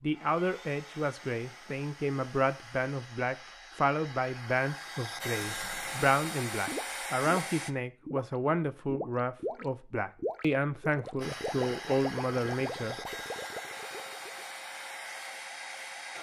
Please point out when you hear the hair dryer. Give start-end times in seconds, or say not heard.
0.1-7.7, 11.2-16.1.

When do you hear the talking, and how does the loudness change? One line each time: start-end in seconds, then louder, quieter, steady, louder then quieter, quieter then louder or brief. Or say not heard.
0.0-12.9 steady.